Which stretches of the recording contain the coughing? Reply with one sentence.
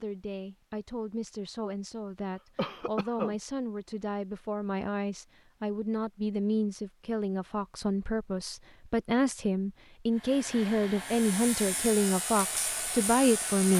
You can hear the coughing from 2.5 to 3.4 s.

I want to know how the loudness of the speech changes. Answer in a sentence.
The volume of the speech goes up.